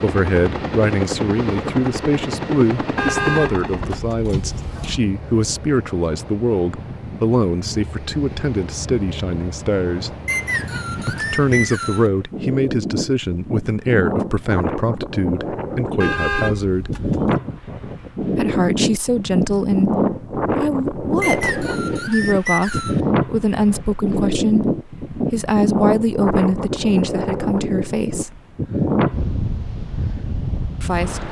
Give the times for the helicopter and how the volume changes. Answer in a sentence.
You can hear the helicopter from 0.0 to 4.0 s, at a steady volume.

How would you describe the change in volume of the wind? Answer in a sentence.
The loudness of the wind goes up.